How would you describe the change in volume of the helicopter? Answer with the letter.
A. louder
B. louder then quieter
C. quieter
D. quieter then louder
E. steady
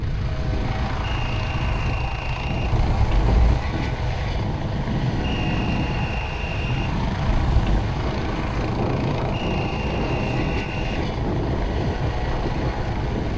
E.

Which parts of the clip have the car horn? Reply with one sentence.
The car horn can be heard from 2.7 to 3.6 s and from 7.2 to 7.9 s.